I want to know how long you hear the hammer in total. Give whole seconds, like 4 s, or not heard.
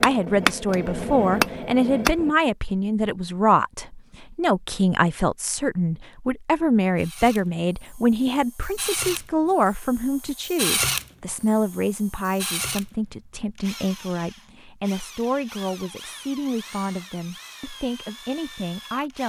2 s.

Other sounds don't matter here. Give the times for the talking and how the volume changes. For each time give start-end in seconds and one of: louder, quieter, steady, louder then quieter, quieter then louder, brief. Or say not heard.
0.0-19.2 quieter.